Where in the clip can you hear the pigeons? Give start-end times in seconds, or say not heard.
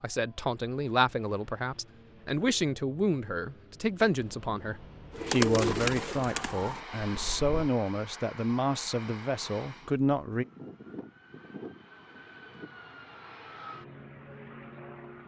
5.1-7.7.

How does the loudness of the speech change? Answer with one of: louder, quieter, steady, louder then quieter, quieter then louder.
steady.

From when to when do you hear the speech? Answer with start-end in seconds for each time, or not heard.
0.0-10.4.